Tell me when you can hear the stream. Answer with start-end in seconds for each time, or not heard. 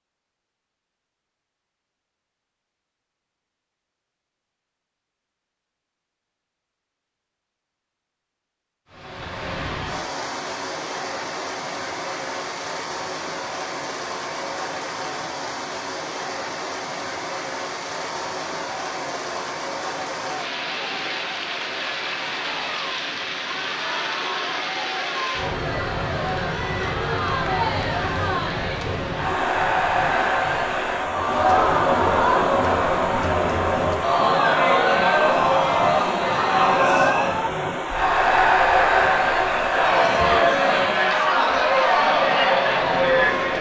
8.9-43.5.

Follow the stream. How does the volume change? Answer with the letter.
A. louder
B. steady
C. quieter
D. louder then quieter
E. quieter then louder
B.